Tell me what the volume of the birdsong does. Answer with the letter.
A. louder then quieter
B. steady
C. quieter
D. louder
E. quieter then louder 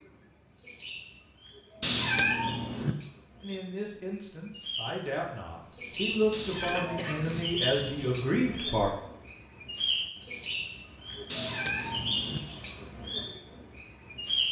D.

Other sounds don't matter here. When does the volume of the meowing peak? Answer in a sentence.
The volume of the meowing peaks at 2 seconds.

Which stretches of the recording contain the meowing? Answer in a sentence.
You can hear the meowing from 1.8 to 3.0 s, from 6.3 to 7.5 s and from 11.3 to 12.4 s.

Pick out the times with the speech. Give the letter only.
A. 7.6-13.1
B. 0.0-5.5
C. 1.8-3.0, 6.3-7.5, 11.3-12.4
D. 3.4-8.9
D.